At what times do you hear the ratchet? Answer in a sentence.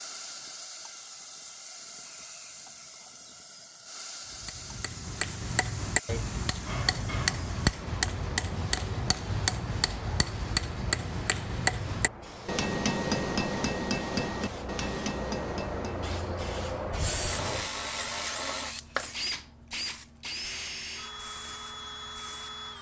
You can't hear the ratchet here.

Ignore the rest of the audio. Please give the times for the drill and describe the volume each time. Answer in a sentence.
The drill can be heard from 16.9 to 22.7 s, getting quieter.